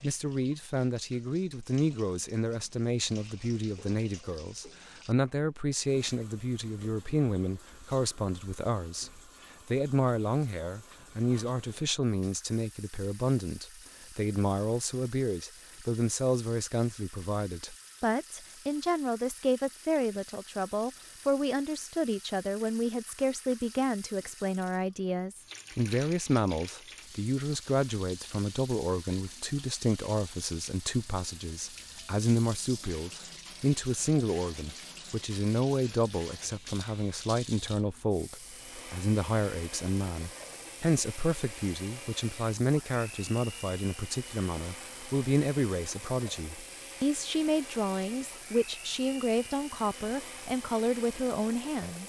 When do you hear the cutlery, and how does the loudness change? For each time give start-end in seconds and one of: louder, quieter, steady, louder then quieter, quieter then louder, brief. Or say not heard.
not heard.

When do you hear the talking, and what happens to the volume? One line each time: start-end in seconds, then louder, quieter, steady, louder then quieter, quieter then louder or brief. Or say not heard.
0.0-52.0 steady.